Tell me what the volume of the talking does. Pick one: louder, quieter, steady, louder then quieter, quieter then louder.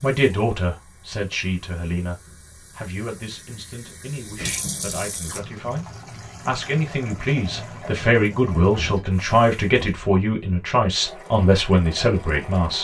quieter then louder.